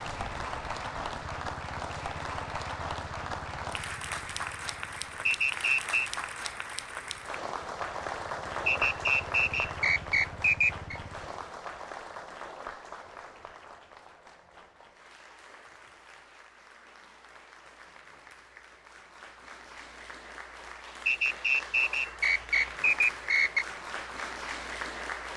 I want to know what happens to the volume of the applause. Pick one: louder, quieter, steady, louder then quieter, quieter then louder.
quieter then louder.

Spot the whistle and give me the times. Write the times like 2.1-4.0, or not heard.
5.2-6.1, 8.7-11.0, 21.1-23.6.